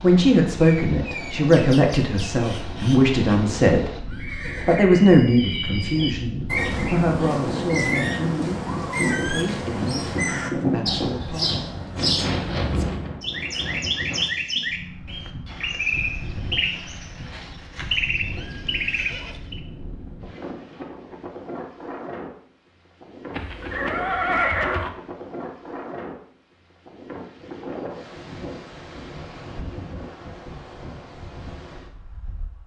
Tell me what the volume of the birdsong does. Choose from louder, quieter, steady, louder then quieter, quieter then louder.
louder.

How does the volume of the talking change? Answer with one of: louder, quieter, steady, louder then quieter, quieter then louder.
quieter.